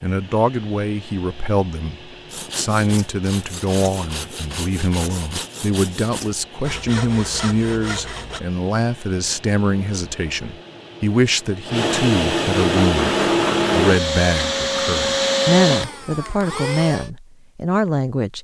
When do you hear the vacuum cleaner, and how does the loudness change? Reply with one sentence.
The vacuum cleaner can be heard from 0.0 to 17.1 s, getting louder.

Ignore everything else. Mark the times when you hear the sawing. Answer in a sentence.
The sawing can be heard from 2.3 to 8.4 s.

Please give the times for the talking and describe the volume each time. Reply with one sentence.
You can hear the talking from 0.0 to 18.3 s, at a steady volume.